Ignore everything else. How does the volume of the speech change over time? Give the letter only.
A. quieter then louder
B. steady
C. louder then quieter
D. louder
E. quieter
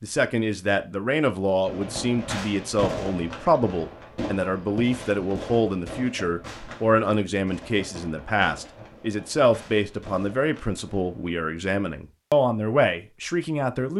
B.